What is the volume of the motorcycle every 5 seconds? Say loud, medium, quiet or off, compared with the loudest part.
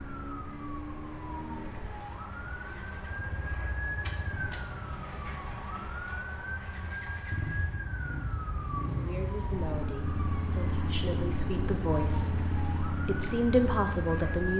medium, loud, loud.